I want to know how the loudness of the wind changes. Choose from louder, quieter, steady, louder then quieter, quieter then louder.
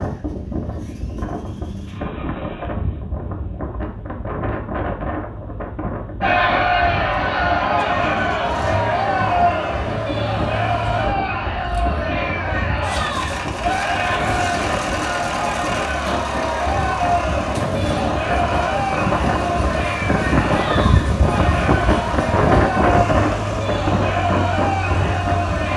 louder.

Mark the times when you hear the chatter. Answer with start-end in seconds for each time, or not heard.
6.2-25.7.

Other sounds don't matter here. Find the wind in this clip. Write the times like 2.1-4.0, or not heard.
0.0-25.7.